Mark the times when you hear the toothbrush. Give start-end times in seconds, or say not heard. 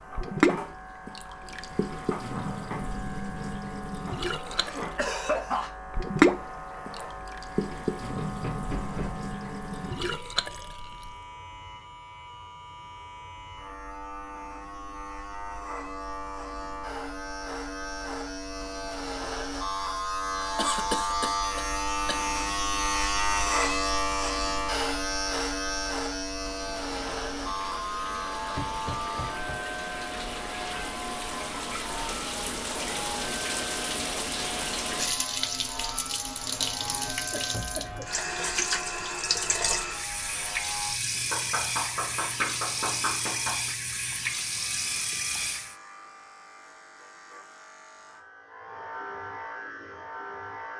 not heard.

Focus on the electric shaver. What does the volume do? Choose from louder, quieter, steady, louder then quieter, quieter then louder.
louder then quieter.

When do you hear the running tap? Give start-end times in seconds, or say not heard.
0.0-11.2, 26.5-45.8.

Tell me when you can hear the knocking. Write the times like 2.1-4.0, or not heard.
8.2-9.2, 28.6-29.6, 41.3-43.7.